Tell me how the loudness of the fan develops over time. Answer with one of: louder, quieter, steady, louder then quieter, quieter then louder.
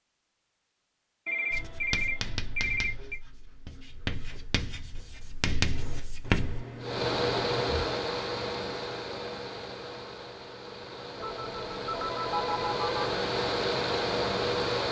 quieter then louder.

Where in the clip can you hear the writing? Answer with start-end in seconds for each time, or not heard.
1.5-6.7.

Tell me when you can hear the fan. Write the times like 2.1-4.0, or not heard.
6.8-14.8.